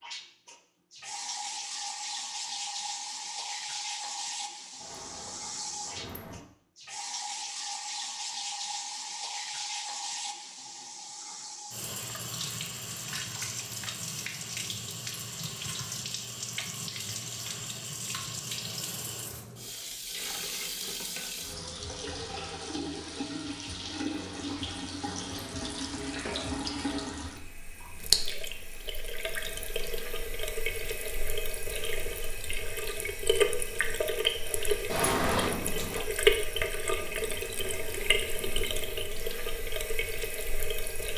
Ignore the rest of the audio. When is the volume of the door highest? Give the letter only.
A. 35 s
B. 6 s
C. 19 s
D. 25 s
A.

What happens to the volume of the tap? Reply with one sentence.
The loudness of the tap goes up.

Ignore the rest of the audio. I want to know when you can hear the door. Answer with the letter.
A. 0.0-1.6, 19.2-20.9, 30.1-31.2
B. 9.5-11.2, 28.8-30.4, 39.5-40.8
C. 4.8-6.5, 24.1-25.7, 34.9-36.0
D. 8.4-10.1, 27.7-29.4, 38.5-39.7
C.